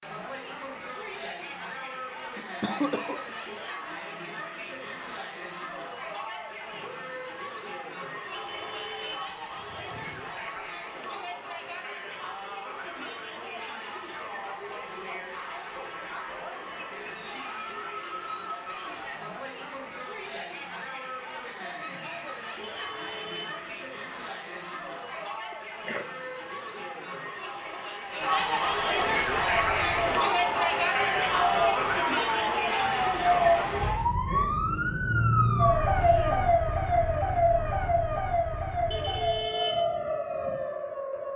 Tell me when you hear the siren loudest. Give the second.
36 s.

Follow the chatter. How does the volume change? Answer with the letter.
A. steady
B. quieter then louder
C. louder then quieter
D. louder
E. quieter
D.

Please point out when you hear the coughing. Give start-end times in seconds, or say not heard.
2.4-3.4, 25.5-26.1, 36.0-36.5.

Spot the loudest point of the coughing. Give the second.
3 s.